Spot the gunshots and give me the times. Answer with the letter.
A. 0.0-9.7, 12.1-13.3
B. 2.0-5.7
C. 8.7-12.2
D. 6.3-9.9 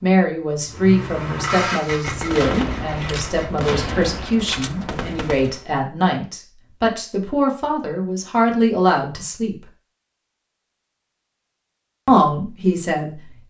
B.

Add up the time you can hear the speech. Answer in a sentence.
You can hear the speech for 11 seconds altogether.